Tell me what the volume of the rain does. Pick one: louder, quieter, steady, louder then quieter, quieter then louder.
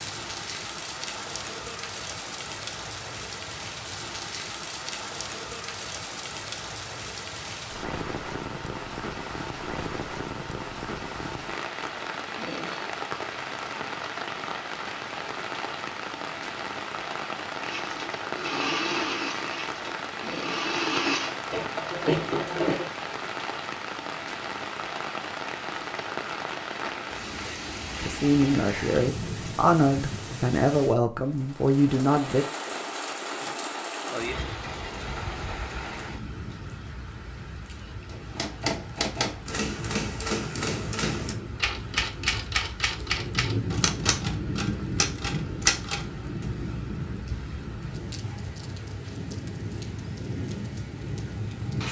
steady.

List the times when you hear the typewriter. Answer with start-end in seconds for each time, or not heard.
38.1-46.5.